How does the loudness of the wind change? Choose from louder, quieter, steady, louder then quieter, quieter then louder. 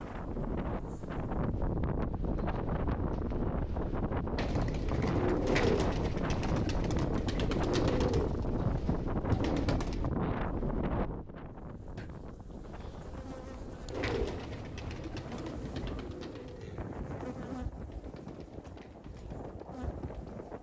quieter.